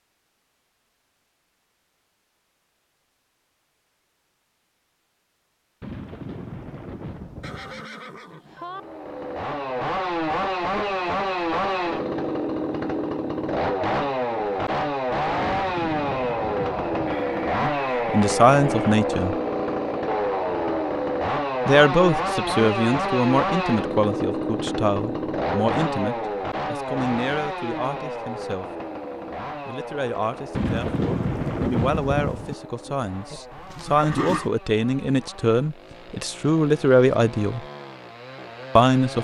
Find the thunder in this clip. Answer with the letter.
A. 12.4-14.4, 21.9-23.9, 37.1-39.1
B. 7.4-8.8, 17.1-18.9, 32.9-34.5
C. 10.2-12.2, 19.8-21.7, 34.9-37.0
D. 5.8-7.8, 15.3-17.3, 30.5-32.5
D.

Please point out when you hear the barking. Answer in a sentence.
The barking can't be heard in this clip.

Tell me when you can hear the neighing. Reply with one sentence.
You can hear the neighing from 7.4 to 8.8 s, from 17.1 to 18.9 s and from 32.9 to 34.5 s.